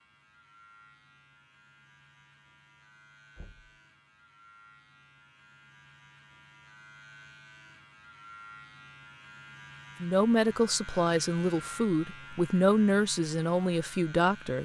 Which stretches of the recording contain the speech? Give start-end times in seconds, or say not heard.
10.0-14.6.